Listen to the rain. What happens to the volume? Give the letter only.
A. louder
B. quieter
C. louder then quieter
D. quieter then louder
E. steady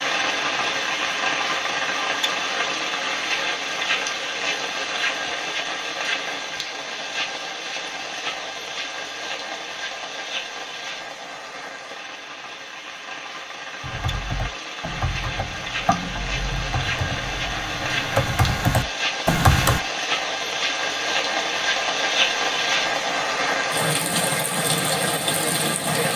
D.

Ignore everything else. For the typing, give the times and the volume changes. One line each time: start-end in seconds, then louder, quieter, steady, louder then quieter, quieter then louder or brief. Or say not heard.
13.8-19.8 louder.